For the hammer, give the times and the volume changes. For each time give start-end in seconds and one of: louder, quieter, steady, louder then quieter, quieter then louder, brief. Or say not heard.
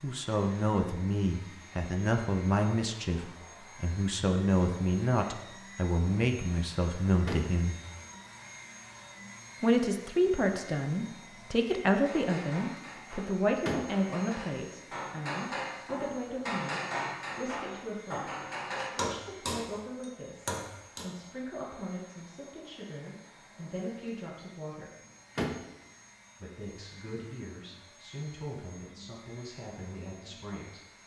12.1-21.1 louder.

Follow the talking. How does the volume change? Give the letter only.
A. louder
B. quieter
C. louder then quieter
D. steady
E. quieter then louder
B.